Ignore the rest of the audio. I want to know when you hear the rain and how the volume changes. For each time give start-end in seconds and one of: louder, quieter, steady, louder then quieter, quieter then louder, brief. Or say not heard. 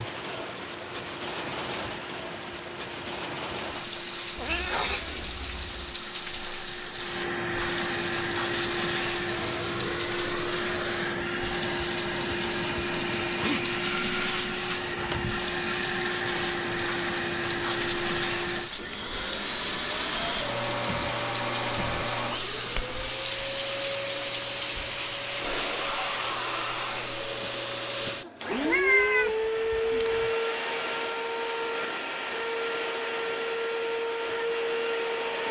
0.0-26.4 steady.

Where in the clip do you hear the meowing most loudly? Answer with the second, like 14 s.
29 s.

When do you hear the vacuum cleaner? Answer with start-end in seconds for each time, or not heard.
0.0-35.4.